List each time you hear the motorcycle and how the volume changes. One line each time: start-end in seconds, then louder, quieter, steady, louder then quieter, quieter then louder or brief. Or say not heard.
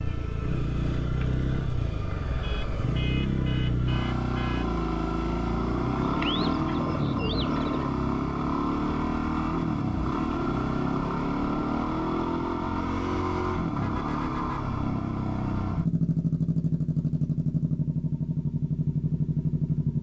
0.0-19.9 steady.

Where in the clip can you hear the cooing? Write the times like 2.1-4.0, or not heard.
6.0-7.9.